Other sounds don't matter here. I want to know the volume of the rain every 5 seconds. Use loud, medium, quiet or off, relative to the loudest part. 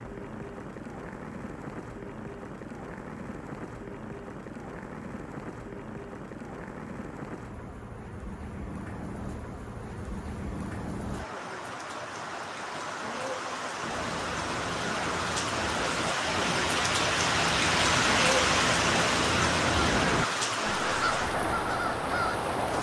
quiet, quiet, medium, loud, loud.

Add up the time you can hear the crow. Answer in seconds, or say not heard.
9 s.